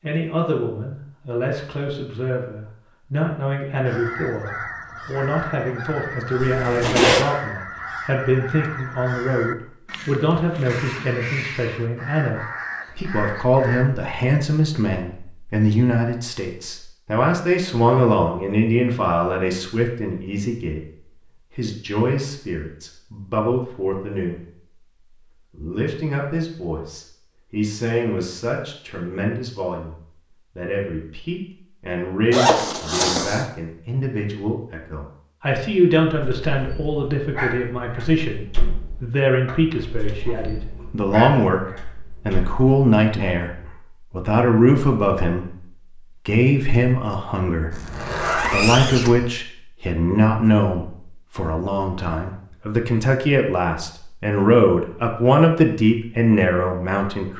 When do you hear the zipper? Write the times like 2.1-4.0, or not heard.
6.4-7.2, 32.3-33.5, 47.7-49.3.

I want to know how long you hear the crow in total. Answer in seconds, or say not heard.
10 s.